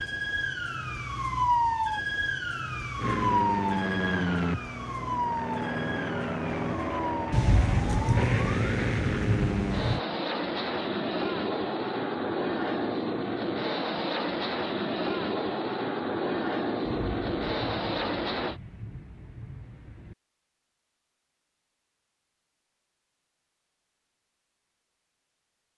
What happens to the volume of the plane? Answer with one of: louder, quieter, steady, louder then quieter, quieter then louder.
steady.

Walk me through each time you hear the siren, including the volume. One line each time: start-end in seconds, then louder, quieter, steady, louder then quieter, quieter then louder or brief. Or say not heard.
0.0-8.8 quieter.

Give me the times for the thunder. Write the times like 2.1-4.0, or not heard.
7.3-10.0, 16.8-20.1.